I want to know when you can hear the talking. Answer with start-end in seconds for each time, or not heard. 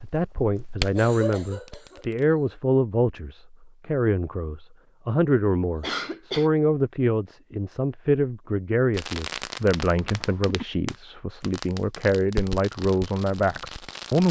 0.0-14.2.